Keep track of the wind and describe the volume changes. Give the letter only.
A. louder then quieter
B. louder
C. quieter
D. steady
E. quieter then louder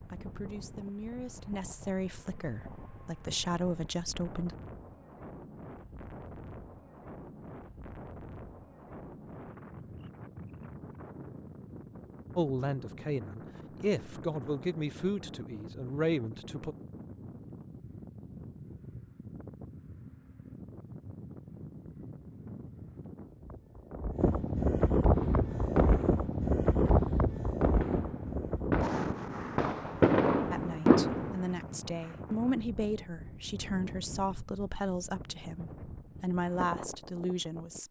A.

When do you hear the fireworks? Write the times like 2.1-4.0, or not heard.
25.1-31.4.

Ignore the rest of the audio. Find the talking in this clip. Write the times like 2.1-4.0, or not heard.
0.1-4.5, 12.3-16.8, 30.5-37.8.